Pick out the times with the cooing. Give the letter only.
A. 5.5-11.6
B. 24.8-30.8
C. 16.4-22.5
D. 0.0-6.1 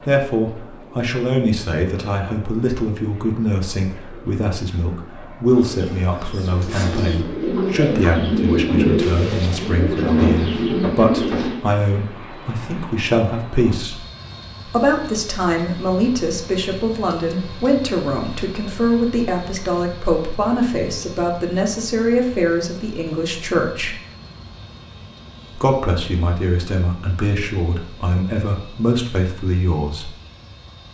A.